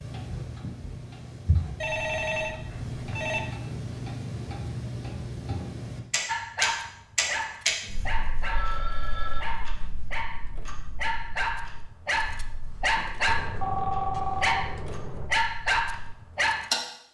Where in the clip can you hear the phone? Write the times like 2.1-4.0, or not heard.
1.8-3.4, 7.8-9.4, 13.2-15.3.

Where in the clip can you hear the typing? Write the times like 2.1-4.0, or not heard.
not heard.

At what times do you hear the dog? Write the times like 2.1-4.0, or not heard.
6.2-16.7.